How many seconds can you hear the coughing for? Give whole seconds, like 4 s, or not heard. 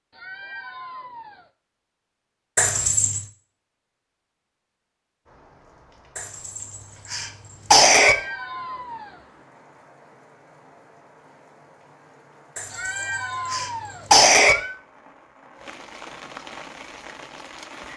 5 s.